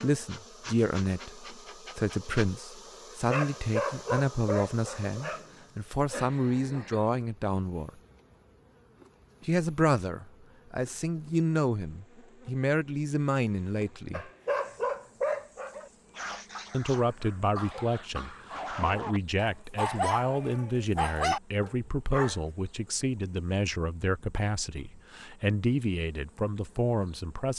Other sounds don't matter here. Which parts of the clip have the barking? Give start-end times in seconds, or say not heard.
3.2-7.0, 14.1-22.4.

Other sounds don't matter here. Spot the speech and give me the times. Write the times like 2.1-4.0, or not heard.
0.0-7.9, 9.4-14.3, 16.7-27.5.